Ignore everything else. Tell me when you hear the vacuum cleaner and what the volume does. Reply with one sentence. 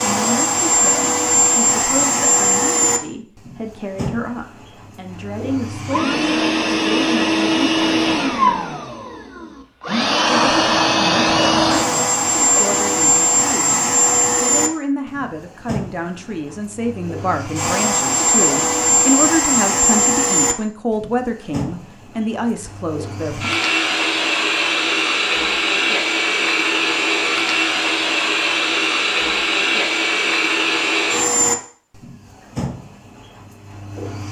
You can hear the vacuum cleaner from 0.0 to 34.2 s, at a steady volume.